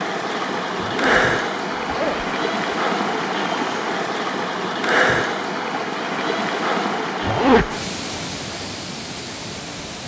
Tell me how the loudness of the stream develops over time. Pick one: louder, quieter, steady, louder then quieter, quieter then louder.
quieter.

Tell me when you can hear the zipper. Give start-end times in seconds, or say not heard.
0.8-2.8, 7.2-7.7.